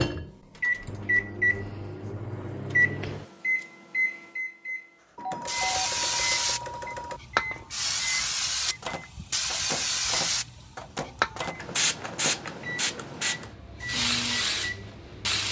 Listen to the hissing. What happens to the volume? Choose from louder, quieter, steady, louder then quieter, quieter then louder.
steady.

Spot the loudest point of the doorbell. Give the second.
6 s.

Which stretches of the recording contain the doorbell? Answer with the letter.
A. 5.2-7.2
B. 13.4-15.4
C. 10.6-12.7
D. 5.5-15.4
A.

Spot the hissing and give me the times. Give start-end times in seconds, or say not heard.
5.5-15.4.